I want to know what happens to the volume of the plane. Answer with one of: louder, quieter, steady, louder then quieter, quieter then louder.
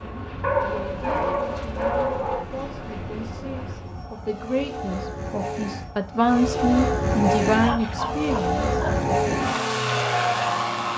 louder.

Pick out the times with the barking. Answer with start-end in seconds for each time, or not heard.
0.4-2.5, 7.6-9.1.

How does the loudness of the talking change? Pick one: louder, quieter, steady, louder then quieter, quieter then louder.
louder.